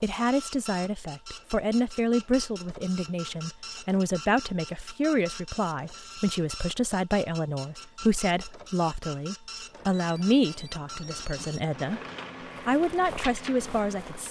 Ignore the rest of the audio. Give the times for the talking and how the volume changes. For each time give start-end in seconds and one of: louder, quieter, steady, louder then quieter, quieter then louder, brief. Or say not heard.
0.0-12.0 steady
12.7-14.2 brief.